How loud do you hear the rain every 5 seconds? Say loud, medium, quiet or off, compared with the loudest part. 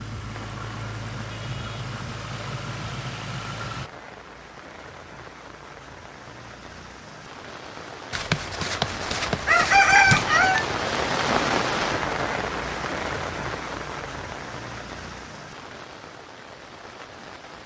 quiet, medium, loud, quiet.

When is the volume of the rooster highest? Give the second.
10 s.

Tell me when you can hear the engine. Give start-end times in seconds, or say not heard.
0.0-3.9.